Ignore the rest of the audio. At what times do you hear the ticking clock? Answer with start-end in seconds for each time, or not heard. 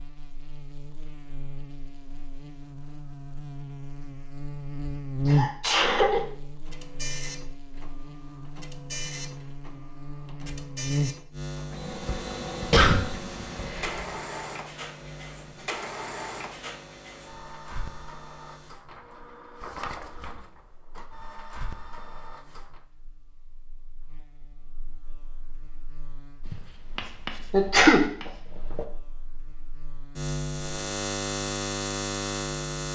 not heard.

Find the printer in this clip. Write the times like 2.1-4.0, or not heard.
6.7-22.8.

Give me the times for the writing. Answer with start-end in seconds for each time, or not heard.
26.4-28.9.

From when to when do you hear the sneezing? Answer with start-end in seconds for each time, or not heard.
5.2-6.2, 12.1-14.1, 27.5-28.0.